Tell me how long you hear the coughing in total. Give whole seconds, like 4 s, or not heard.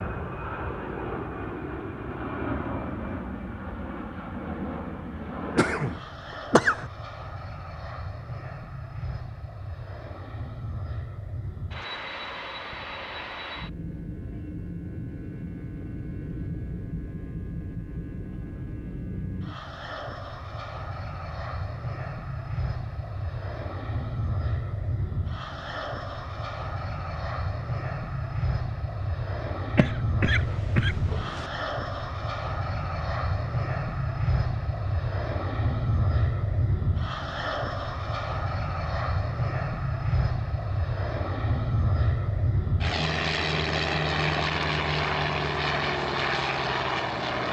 3 s.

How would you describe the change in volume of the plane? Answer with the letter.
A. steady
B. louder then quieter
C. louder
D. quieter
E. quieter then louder
C.